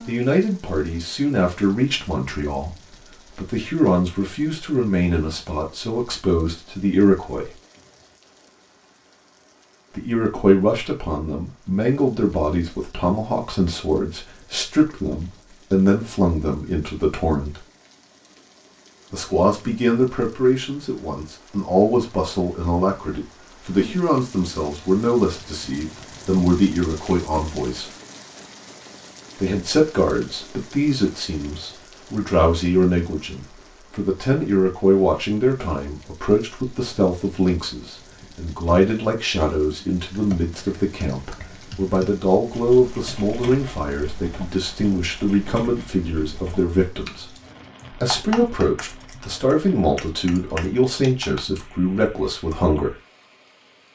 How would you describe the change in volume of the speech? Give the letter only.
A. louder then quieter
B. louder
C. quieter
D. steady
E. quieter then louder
D.